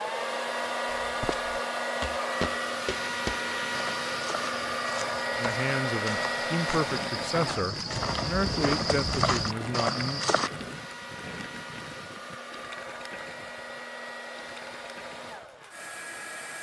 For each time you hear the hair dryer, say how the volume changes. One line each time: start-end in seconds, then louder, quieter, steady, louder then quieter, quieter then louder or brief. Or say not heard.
0.0-16.5 quieter.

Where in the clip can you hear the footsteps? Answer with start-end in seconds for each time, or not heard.
1.0-10.5.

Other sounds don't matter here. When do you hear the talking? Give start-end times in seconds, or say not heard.
5.3-10.2.